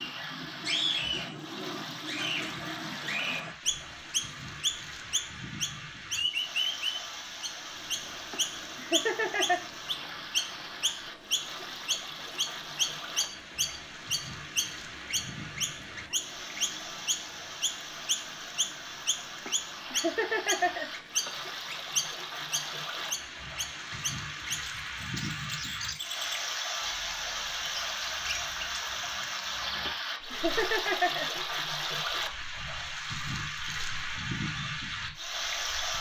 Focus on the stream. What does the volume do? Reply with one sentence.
The volume of the stream goes up.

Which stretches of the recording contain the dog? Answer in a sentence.
The dog can't be heard in this clip.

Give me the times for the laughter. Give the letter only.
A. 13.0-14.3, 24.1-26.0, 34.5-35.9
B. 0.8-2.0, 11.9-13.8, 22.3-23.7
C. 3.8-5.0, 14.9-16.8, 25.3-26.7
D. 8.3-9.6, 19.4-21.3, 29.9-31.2
D.